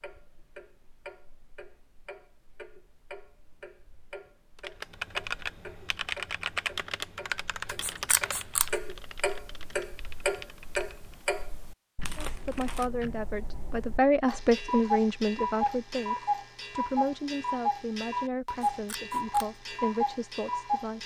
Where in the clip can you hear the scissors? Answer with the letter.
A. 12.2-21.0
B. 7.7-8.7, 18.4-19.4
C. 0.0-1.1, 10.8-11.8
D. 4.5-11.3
B.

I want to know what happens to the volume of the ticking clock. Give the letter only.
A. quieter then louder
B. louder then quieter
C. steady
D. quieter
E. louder
E.